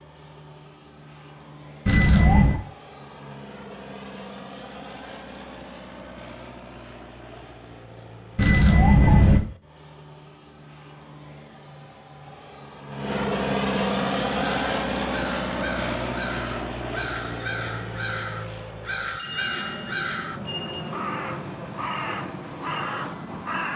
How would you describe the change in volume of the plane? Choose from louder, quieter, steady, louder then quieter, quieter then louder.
louder then quieter.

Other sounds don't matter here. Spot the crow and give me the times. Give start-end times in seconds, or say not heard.
13.9-23.7.